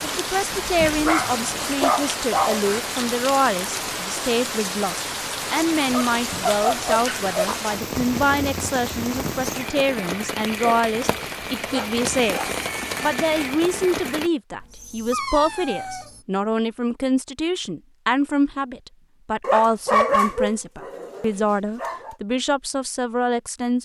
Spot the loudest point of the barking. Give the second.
20 s.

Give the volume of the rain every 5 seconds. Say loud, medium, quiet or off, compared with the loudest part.
loud, loud, loud, off, off.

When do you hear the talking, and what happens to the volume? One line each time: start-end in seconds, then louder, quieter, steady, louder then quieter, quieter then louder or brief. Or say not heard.
0.0-23.7 steady.